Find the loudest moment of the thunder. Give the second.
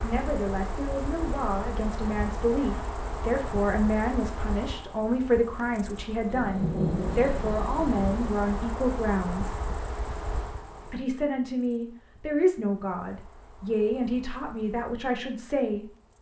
7 s.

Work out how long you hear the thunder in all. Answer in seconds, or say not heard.
2 s.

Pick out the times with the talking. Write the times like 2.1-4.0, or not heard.
0.0-9.6, 10.9-15.8.